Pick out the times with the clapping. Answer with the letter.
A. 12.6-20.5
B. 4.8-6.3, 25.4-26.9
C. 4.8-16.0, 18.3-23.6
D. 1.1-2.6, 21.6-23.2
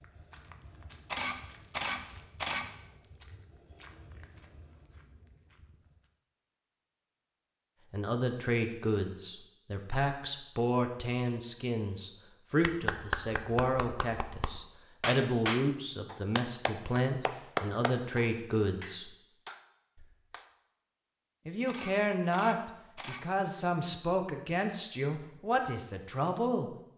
A.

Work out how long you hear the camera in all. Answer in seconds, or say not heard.
3 s.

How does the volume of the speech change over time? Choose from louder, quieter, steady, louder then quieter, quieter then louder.
steady.